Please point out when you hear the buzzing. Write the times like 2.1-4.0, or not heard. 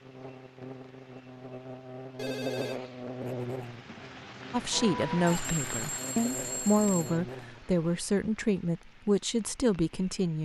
0.0-7.8.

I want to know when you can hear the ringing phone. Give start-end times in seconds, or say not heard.
2.1-2.8, 5.2-7.2.